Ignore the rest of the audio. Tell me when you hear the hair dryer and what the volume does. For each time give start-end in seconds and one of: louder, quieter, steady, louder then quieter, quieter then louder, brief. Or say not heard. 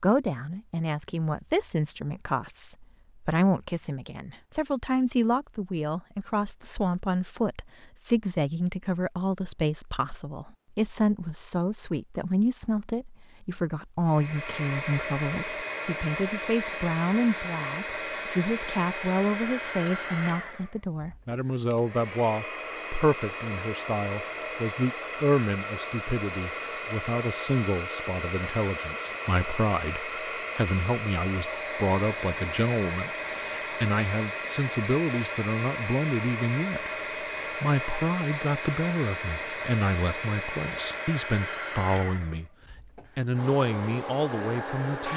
14.1-45.1 steady.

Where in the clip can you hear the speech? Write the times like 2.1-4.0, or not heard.
0.0-42.5, 43.1-45.1.